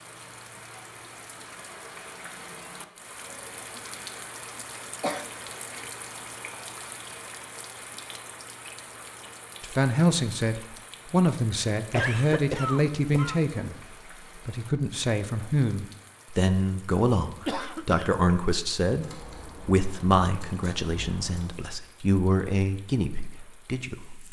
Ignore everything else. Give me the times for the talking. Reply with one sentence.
You can hear the talking from 9.6 to 24.2 s.